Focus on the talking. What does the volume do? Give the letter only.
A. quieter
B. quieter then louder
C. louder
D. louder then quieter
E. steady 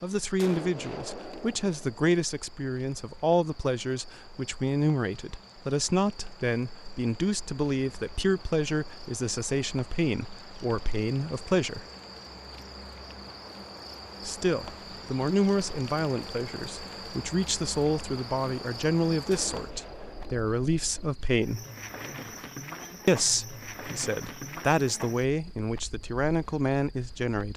E.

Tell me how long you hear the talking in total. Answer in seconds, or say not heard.
24 s.